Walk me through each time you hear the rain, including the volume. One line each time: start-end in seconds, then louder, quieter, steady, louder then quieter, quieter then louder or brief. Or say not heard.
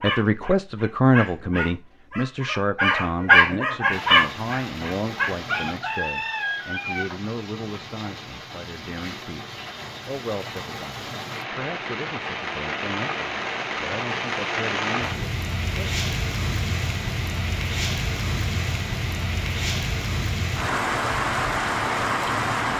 3.9-22.7 louder.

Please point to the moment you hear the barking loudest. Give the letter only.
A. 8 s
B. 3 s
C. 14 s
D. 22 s
B.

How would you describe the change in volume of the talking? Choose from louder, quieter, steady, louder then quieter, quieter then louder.
quieter.